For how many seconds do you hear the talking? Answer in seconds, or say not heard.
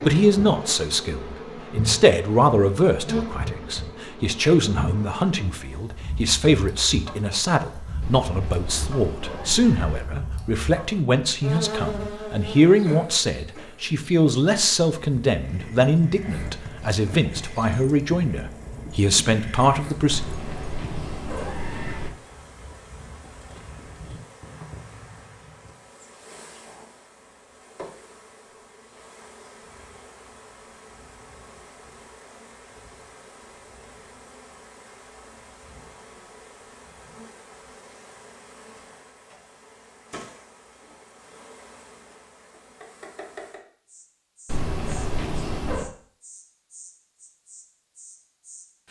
20 s.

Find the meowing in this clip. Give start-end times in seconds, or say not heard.
8.0-10.1, 20.1-22.1, 44.5-45.9.